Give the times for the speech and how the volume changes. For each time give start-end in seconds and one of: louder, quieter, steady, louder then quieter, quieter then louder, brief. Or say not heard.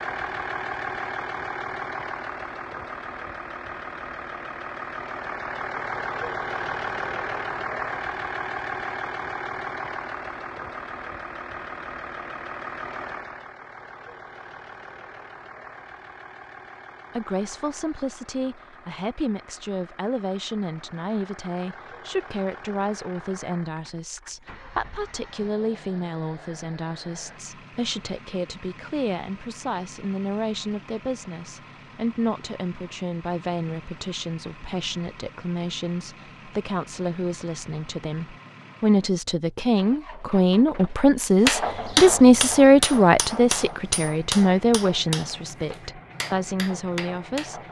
17.1-47.6 louder.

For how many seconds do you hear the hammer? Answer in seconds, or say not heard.
6 s.